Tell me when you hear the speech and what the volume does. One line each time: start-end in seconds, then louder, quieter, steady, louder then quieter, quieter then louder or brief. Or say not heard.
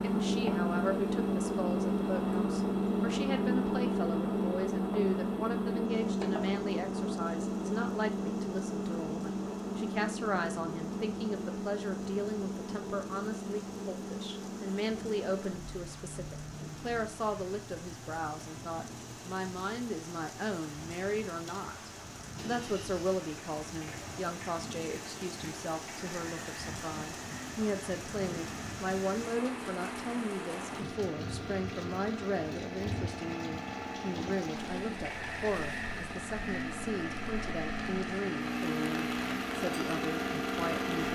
0.0-41.0 steady.